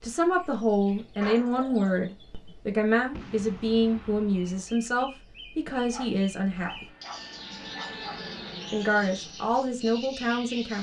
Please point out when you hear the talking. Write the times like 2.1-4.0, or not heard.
0.0-6.8, 8.7-10.7.